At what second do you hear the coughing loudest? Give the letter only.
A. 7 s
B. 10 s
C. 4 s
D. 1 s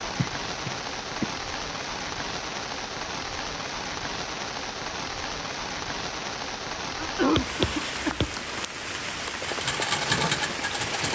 A.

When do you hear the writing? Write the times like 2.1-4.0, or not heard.
7.3-8.3.